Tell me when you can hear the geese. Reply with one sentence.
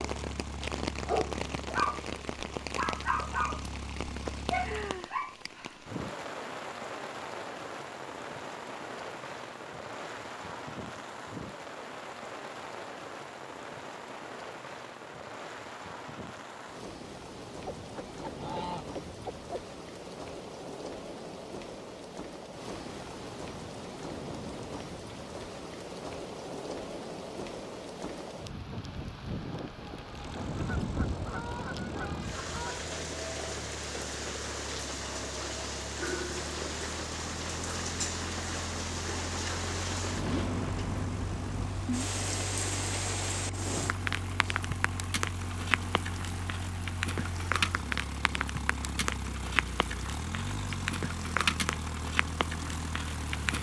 The geese can be heard from 17.8 to 19.5 s and from 30.6 to 32.9 s.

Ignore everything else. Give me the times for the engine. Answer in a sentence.
You can hear the engine from 0.0 to 5.0 s and from 30.0 to 53.5 s.